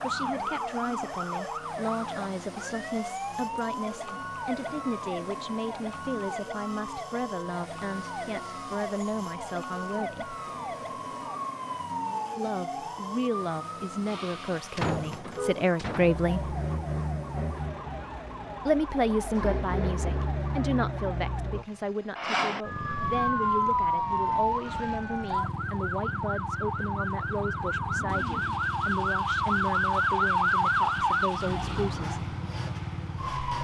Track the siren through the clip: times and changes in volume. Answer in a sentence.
You can hear the siren from 0.0 to 33.5 s, getting louder.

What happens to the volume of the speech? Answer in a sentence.
The volume of the speech goes up, then down.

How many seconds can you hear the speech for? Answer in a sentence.
You can hear the speech for 28 seconds altogether.